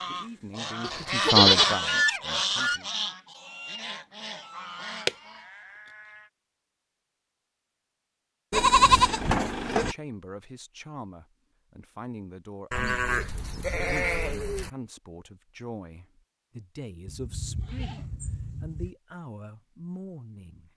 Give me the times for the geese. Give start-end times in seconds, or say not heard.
0.0-5.4.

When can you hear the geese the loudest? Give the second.
2 s.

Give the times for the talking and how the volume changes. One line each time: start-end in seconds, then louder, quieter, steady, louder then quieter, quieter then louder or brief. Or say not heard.
0.1-2.9 brief
9.7-20.7 steady.